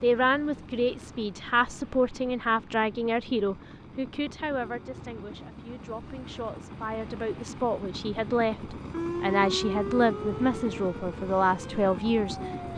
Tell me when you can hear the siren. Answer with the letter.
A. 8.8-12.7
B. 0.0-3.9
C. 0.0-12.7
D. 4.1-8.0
A.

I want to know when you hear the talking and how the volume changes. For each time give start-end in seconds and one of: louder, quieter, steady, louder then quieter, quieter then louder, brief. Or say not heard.
0.0-12.7 quieter then louder.